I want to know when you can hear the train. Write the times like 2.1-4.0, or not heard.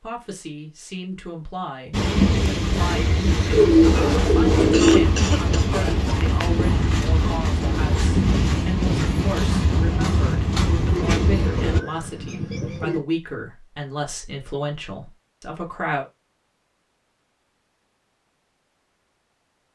1.9-11.8.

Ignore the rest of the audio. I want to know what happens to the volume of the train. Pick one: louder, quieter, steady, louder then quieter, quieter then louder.
steady.